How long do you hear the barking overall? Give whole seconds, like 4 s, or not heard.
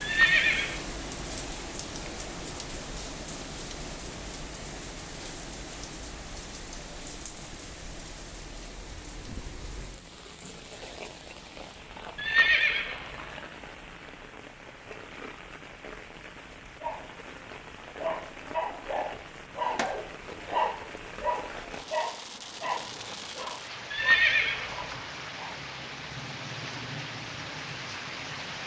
9 s.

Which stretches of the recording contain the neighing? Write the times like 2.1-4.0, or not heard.
0.0-0.8, 12.2-13.2, 23.9-25.0.